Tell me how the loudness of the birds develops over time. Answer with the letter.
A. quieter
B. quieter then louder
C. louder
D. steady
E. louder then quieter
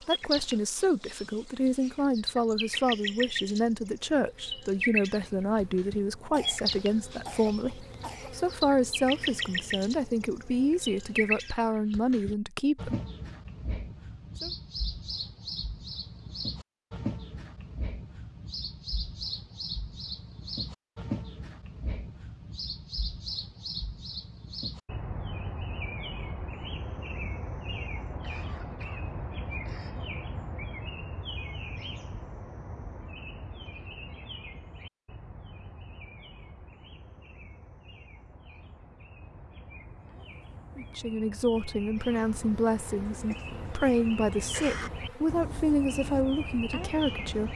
A.